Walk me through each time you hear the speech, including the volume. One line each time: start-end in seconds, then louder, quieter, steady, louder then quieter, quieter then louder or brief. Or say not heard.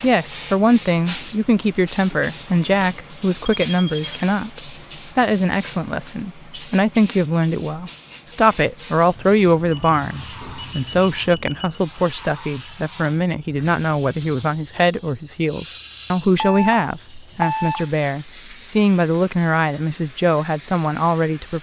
0.0-21.5 steady.